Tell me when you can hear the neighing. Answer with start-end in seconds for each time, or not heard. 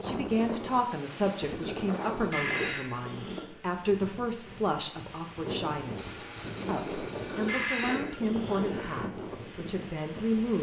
2.3-3.5, 7.5-9.1.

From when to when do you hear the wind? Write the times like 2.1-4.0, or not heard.
0.0-10.5.